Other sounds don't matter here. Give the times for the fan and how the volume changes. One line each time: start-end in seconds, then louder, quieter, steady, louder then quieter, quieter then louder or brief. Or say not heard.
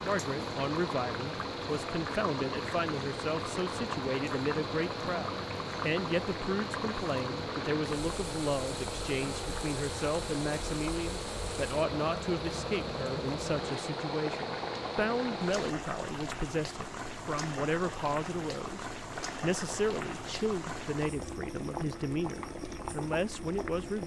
0.0-15.8 steady.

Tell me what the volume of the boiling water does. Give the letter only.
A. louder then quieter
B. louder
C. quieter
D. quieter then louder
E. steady
E.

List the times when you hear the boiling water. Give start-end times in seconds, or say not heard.
0.0-24.0.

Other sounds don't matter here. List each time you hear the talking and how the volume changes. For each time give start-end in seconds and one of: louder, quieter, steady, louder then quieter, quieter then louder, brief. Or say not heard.
0.0-24.0 steady.